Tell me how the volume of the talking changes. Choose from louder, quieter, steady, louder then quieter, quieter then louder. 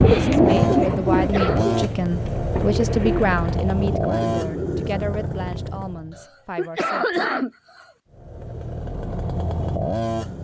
quieter.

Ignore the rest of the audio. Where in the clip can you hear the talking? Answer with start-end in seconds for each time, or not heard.
0.1-7.2.